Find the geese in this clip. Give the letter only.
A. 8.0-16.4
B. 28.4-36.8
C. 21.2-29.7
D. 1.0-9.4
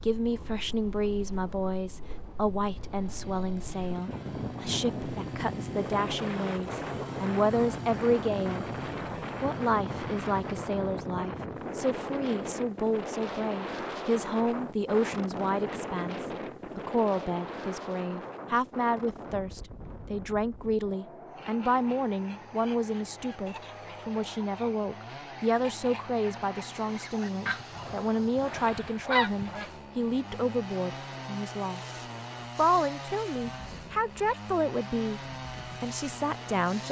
C.